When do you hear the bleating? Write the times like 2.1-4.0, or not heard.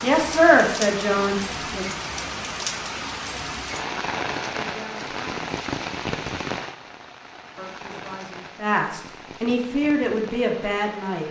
not heard.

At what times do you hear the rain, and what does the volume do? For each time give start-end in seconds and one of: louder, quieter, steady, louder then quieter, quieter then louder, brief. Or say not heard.
0.0-11.2 quieter.